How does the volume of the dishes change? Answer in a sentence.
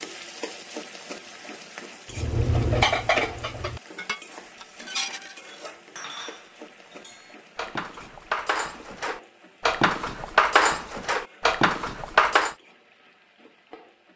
The volume of the dishes goes down, then up.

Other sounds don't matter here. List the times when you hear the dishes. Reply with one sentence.
The dishes can be heard from 2.1 to 12.6 s.